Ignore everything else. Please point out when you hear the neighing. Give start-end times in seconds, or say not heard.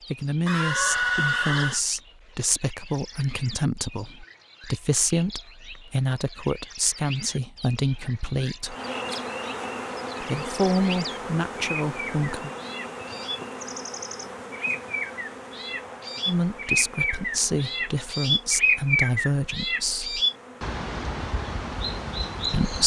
0.5-1.8.